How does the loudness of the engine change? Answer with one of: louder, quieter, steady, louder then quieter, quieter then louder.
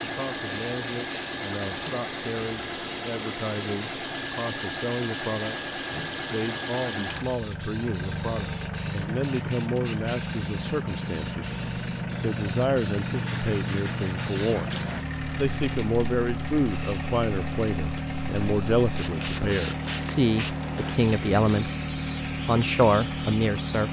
steady.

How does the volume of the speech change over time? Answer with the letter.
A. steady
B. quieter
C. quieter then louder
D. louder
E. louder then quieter
D.